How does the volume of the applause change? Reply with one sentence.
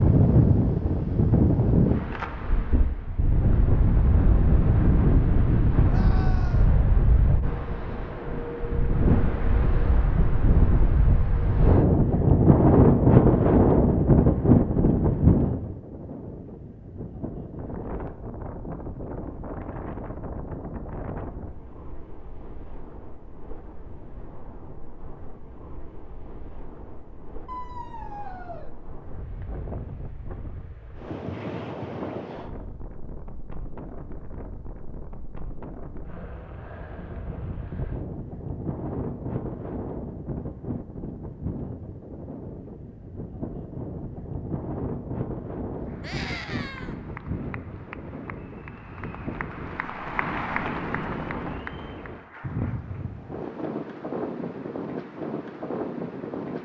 The volume of the applause goes up, then down.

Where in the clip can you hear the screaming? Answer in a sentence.
The screaming can be heard from 5.8 to 6.7 s, from 27.4 to 28.7 s and from 46.0 to 47.0 s.